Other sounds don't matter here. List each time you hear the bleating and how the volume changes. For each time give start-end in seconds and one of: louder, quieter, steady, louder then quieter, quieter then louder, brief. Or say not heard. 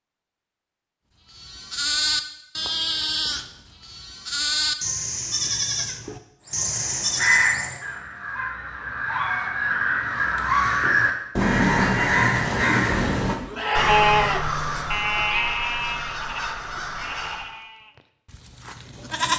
1.3-7.5 steady
13.4-19.3 quieter.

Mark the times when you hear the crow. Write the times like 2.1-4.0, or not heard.
6.5-17.5.